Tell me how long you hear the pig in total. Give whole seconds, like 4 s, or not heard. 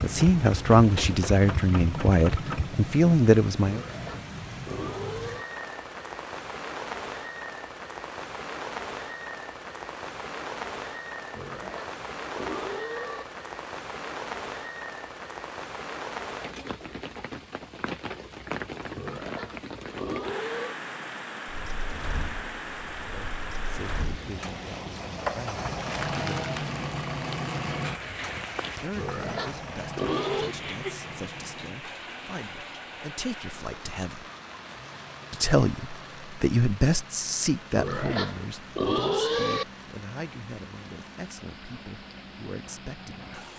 9 s.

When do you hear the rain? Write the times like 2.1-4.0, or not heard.
0.0-43.5.